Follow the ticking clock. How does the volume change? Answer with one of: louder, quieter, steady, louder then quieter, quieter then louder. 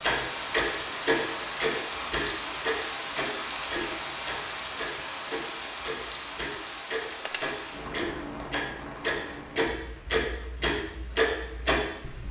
quieter then louder.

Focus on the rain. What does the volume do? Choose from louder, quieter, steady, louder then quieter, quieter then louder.
quieter.